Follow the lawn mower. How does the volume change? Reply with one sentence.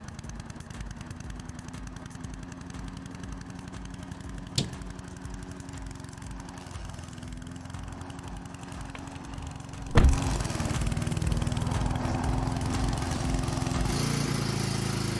The loudness of the lawn mower goes up.